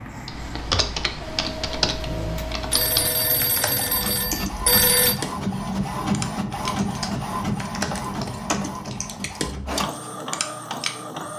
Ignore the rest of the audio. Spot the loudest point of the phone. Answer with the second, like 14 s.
5 s.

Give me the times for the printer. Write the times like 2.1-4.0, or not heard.
0.0-11.3.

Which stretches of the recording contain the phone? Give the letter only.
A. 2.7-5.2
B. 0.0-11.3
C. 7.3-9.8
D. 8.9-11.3
A.